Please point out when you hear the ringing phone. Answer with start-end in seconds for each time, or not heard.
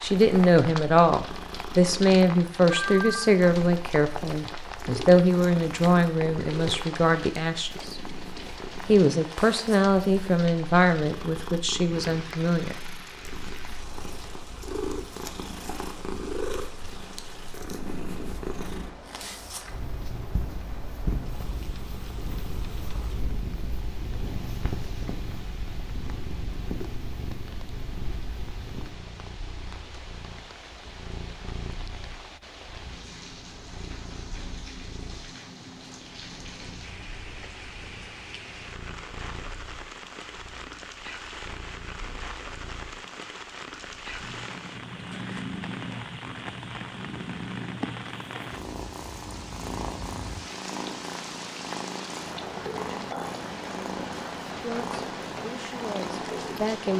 2.7-3.4.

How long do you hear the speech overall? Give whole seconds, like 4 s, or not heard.
14 s.